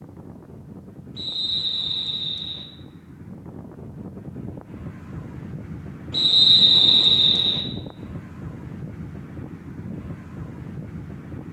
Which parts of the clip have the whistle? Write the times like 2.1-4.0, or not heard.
1.1-2.6, 6.1-7.7.